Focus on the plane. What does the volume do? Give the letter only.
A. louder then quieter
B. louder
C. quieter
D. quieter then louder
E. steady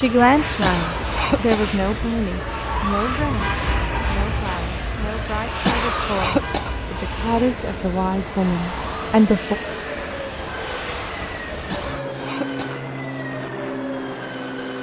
E.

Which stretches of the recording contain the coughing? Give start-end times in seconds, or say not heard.
0.6-2.2, 5.7-7.0, 11.7-13.3.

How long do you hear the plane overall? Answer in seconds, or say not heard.
15 s.